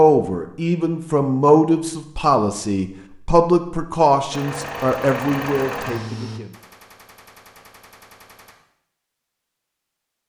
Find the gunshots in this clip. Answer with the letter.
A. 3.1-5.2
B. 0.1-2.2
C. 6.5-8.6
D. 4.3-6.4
C.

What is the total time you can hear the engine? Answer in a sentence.
You can hear the engine for 2 seconds altogether.